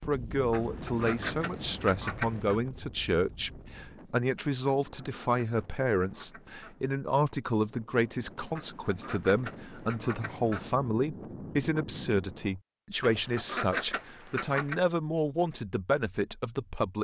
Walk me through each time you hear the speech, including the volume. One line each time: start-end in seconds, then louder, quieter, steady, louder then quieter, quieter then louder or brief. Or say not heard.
0.1-17.0 steady.